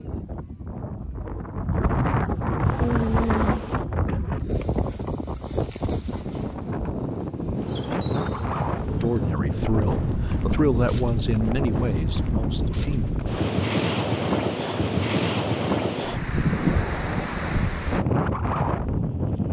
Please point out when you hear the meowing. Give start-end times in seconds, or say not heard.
2.8-3.6.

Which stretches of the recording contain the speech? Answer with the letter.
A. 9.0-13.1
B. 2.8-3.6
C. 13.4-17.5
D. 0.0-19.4
A.